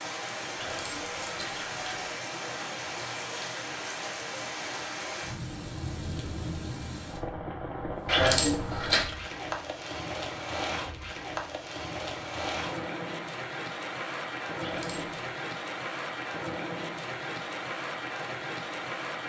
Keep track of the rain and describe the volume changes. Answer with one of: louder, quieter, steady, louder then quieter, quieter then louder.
steady.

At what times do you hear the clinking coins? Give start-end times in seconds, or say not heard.
0.6-2.1, 8.1-9.1, 14.6-15.1.